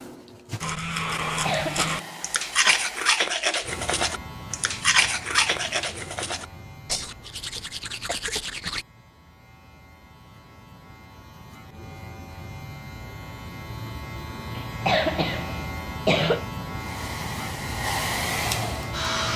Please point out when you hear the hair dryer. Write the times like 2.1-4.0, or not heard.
0.0-3.1, 16.8-19.3.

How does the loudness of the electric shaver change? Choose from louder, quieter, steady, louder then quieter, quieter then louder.
quieter then louder.